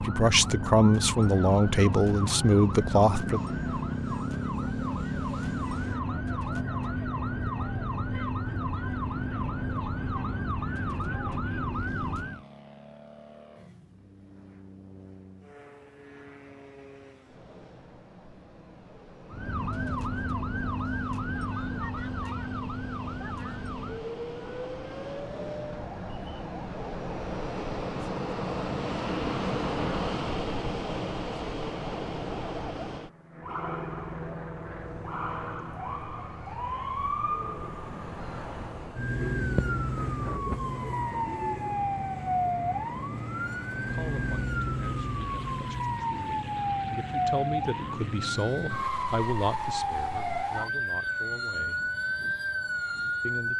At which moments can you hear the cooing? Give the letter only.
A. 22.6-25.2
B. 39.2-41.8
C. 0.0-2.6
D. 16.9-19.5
B.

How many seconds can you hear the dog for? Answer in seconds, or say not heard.
not heard.